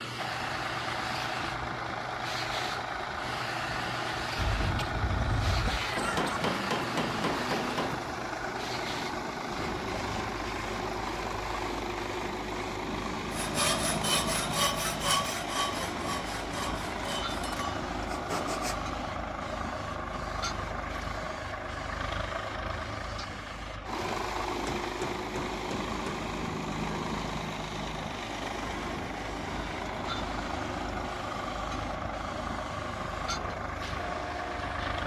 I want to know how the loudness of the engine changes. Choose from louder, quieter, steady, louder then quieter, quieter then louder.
steady.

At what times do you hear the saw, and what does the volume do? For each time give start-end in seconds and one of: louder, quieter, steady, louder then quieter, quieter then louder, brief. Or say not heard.
13.3-18.8 quieter.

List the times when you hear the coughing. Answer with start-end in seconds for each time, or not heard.
4.3-6.4.